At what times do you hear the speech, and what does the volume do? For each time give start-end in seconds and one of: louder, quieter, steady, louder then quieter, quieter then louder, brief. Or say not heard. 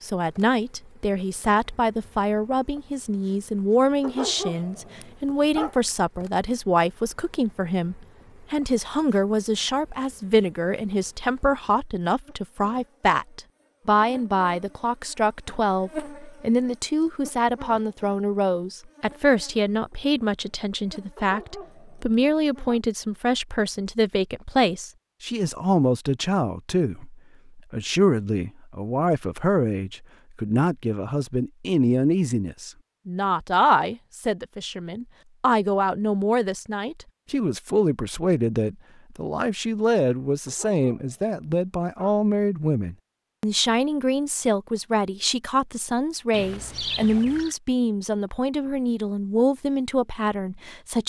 0.0-51.0 steady.